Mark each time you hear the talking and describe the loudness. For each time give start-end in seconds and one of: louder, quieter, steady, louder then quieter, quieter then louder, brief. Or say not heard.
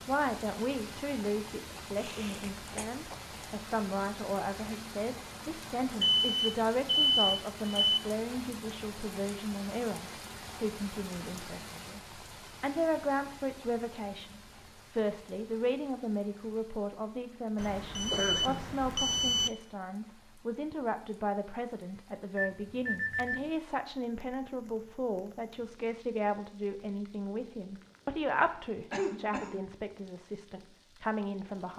0.1-31.7 steady.